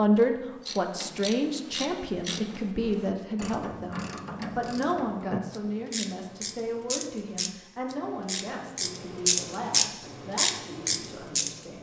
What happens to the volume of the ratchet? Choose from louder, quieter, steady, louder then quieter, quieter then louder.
louder.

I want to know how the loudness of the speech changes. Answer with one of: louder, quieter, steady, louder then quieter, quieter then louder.
quieter.